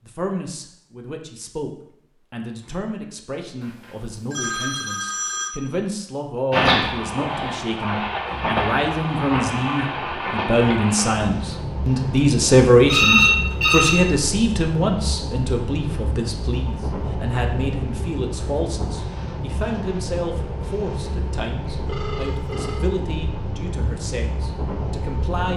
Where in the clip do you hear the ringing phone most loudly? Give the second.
13 s.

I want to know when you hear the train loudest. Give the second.
7 s.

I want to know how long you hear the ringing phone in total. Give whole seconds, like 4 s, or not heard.
4 s.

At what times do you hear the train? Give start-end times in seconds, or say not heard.
6.5-25.5.